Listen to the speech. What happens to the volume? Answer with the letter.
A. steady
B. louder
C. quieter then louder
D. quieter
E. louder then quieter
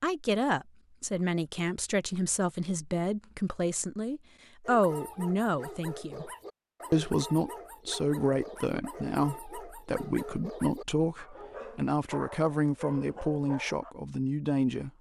A.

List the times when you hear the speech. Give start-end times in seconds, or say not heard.
0.0-6.3, 6.9-14.9.